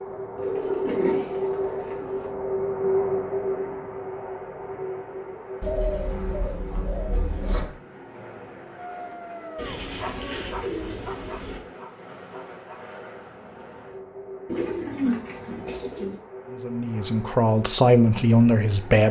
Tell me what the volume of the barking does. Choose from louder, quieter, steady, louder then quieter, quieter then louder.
quieter.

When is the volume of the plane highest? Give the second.
3 s.